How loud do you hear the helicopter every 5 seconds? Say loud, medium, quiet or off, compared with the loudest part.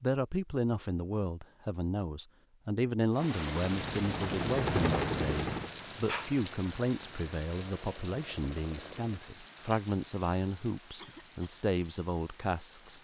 loud, medium, off.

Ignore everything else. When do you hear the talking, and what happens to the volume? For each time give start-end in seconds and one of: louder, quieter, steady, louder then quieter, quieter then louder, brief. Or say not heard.
0.0-13.0 steady.